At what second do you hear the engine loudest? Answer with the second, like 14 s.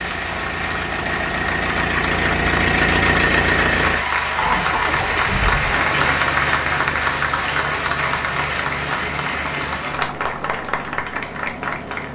3 s.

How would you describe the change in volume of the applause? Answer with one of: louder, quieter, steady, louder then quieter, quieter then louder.
louder then quieter.